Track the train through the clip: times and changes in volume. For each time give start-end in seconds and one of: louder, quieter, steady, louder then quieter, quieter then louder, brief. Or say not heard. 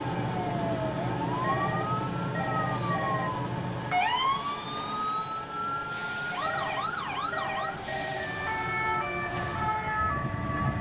0.0-10.7 steady.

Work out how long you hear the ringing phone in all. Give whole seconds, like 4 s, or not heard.
4 s.